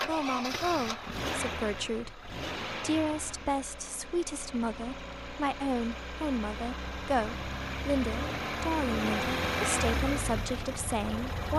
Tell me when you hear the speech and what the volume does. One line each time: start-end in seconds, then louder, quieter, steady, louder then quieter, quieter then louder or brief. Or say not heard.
0.0-11.5 steady.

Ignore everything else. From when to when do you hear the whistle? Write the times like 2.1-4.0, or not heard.
not heard.